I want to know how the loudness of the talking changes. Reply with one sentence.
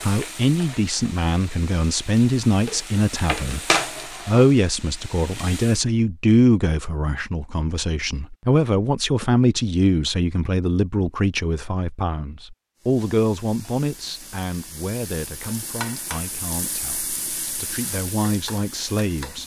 The volume of the talking goes down.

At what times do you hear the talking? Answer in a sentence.
You can hear the talking from 0.0 to 3.6 s and from 4.2 to 19.4 s.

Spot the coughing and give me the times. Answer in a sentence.
You can't hear the coughing here.